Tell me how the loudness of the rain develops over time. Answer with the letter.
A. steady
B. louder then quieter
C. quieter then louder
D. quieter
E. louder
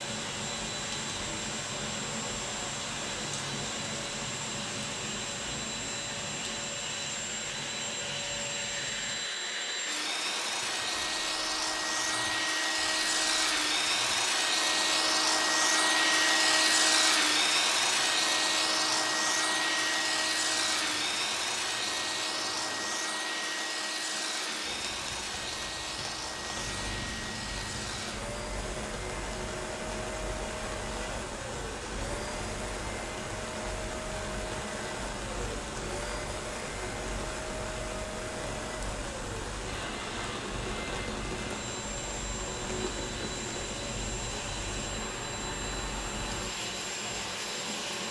C.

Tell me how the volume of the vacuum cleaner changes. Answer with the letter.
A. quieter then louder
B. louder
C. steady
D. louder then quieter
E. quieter
D.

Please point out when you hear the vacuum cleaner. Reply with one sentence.
The vacuum cleaner can be heard from 0.0 to 48.0 s.